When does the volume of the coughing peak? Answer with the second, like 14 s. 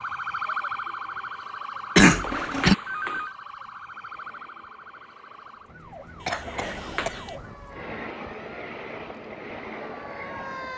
2 s.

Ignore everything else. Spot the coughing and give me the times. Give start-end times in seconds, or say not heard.
1.9-2.8, 6.2-7.7.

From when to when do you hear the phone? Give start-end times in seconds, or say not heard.
2.2-3.4, 6.8-7.2.